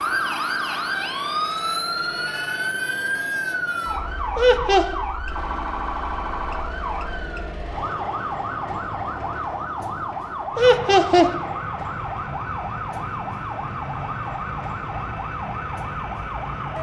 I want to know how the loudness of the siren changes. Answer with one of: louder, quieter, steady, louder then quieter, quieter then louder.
quieter.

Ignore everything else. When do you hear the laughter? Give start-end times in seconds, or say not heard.
4.3-5.0, 10.6-11.3.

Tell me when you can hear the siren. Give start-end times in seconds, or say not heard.
0.0-16.7.